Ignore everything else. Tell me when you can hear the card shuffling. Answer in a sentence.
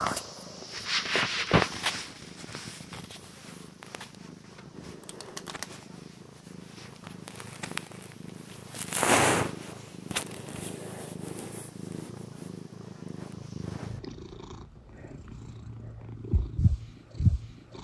You can hear the card shuffling from 4.4 to 5.8 s.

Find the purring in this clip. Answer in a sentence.
You can hear the purring from 0.0 to 17.7 s.